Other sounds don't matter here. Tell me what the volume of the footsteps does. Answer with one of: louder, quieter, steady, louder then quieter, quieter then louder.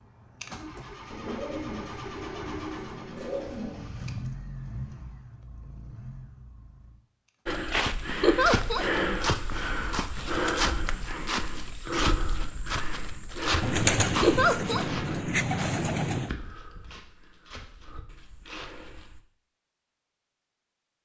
quieter.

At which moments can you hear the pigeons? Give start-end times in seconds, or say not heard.
1.1-4.0, 13.6-16.3.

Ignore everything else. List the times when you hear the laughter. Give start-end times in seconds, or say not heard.
8.2-8.8, 14.2-14.8.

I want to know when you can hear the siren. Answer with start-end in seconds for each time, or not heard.
not heard.